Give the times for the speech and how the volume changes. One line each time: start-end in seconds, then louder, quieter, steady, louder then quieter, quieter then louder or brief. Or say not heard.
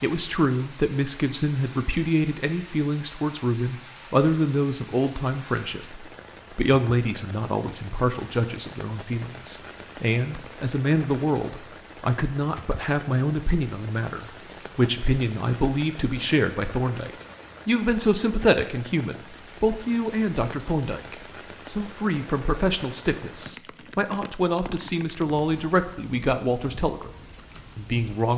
0.0-27.1 steady
27.8-28.3 brief.